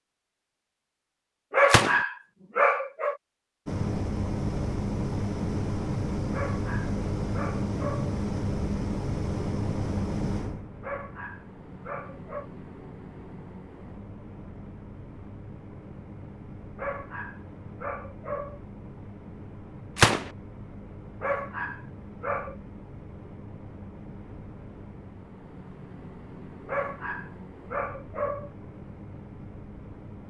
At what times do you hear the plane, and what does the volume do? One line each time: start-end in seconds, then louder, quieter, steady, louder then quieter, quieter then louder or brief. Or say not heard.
3.6-30.2 quieter.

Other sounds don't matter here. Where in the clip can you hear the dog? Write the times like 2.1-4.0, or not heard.
1.5-3.1, 6.3-8.2, 10.8-12.4, 16.8-18.6, 21.2-22.6, 26.6-28.5.